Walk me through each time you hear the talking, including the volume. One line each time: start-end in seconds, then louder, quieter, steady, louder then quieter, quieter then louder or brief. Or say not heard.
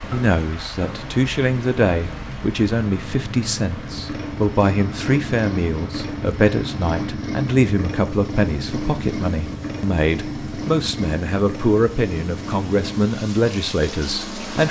0.0-14.6 steady.